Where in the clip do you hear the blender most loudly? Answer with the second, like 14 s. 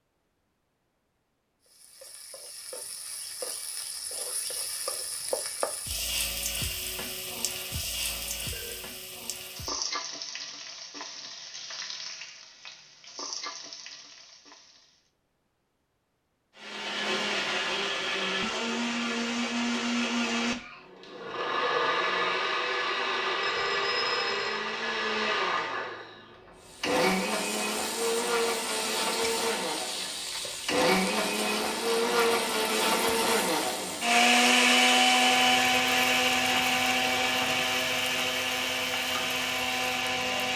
35 s.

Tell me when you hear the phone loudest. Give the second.
24 s.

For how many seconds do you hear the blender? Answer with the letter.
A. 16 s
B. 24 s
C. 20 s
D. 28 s
B.